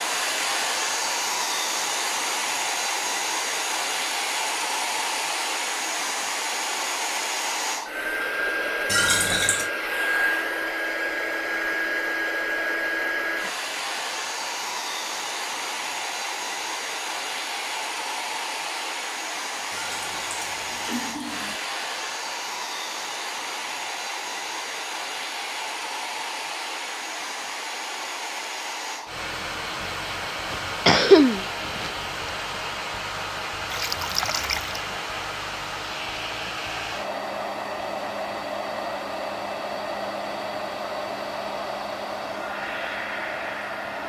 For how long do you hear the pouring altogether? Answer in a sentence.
You can hear the pouring for 4 seconds altogether.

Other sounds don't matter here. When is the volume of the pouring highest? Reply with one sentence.
The loudest moment of the pouring is at 9 seconds.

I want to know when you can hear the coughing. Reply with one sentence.
You can hear the coughing from 30.5 to 31.9 s.